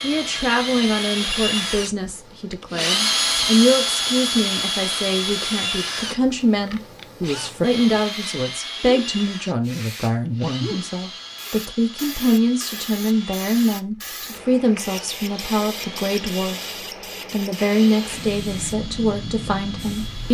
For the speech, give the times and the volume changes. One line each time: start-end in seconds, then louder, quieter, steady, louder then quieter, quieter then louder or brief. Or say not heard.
0.0-16.6 steady
17.3-20.2 brief.